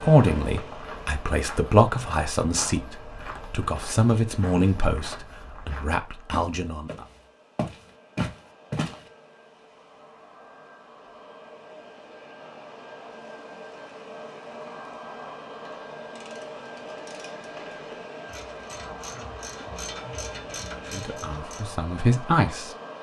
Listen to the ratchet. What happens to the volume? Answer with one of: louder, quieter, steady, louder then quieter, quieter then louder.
louder.